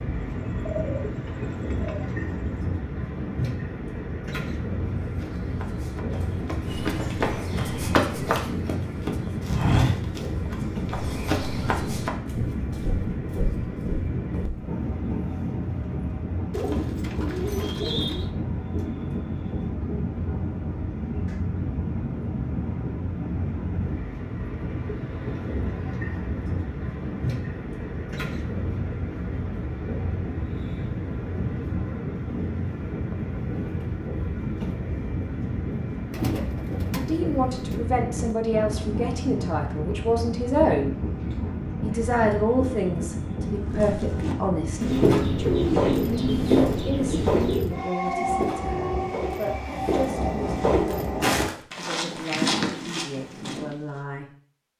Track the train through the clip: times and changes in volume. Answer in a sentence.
You can hear the train from 0.0 to 51.5 s, at a steady volume.